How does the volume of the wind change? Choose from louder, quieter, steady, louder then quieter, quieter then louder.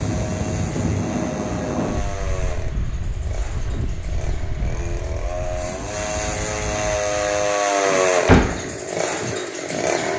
quieter.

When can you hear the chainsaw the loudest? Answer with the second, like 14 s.
8 s.